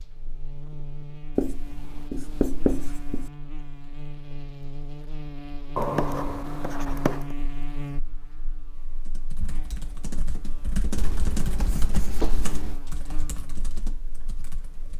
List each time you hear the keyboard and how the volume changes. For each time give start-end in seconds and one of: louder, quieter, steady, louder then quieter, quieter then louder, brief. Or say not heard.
8.8-14.9 louder then quieter.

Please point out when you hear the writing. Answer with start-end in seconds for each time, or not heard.
1.4-3.3, 5.8-7.2, 10.9-12.8.